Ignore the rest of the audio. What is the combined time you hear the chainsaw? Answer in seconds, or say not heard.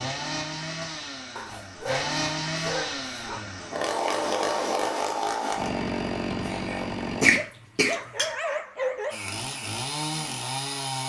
9 s.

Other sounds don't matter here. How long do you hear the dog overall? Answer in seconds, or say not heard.
4 s.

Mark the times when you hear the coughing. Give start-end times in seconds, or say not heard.
6.5-8.3.